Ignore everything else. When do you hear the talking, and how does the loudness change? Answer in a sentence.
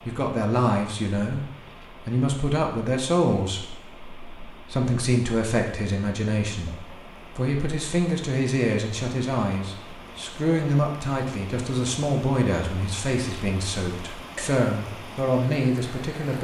You can hear the talking from 0.1 to 16.4 s, at a steady volume.